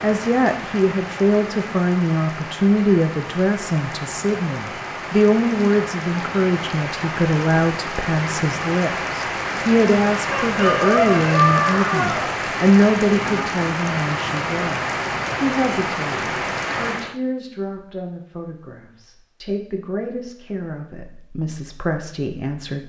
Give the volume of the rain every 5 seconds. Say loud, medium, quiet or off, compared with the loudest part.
medium, loud, loud, loud, off.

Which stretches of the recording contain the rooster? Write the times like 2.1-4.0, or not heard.
10.3-12.3.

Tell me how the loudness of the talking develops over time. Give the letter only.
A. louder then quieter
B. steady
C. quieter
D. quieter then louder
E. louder
C.